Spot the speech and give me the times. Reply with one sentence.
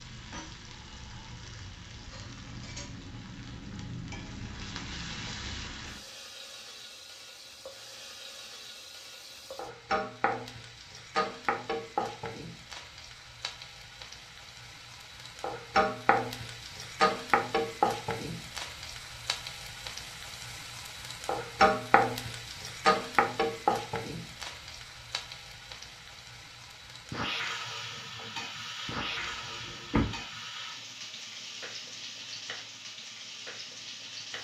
The speech can't be heard in this clip.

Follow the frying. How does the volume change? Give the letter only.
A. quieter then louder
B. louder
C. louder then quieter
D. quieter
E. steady
C.